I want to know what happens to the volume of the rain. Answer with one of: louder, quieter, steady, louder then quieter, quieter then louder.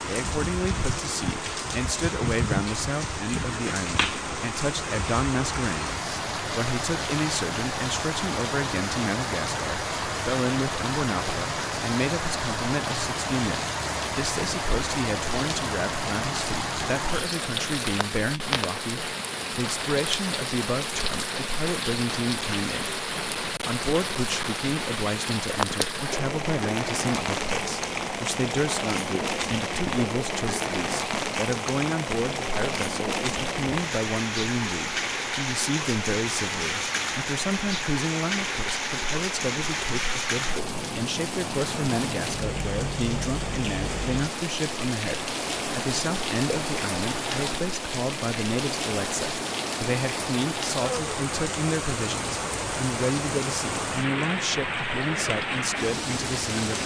steady.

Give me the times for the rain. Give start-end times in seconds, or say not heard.
0.0-56.8.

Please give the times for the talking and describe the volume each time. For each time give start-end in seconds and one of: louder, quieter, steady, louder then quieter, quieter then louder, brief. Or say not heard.
0.1-56.8 steady.